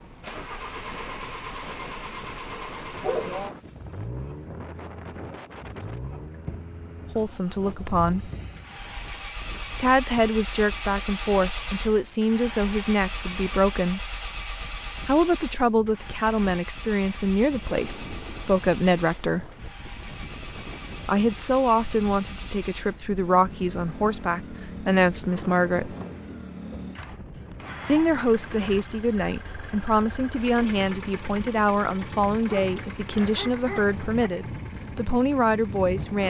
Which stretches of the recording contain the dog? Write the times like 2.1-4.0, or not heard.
2.5-3.5, 32.5-34.2.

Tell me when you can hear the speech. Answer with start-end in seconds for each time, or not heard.
7.2-8.3, 9.8-14.1, 15.1-19.4, 21.1-25.9, 27.9-36.2.